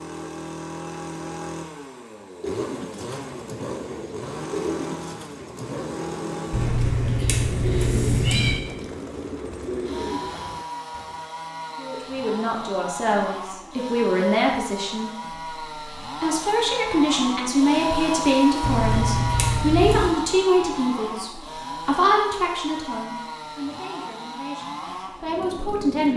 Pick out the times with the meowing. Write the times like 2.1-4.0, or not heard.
6.5-8.6, 18.6-20.1.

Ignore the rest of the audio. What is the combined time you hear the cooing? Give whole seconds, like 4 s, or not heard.
9 s.